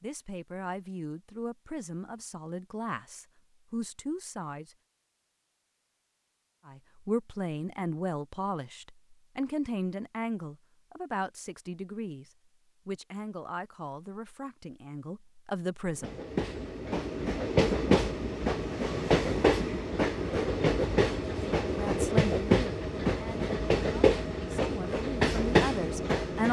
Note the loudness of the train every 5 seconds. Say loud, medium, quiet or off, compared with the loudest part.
off, off, off, loud, loud, loud.